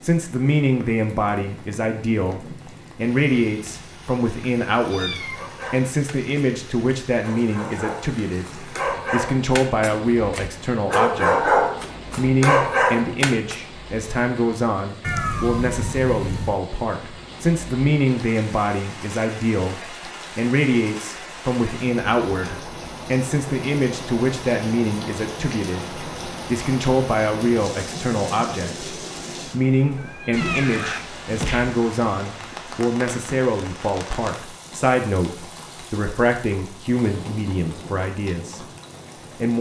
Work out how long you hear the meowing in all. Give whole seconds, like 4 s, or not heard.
4 s.